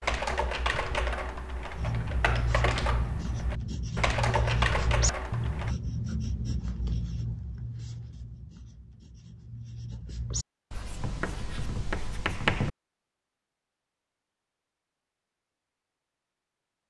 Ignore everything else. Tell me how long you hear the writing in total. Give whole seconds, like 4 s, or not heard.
11 s.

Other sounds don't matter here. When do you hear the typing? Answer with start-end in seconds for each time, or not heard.
0.0-5.8.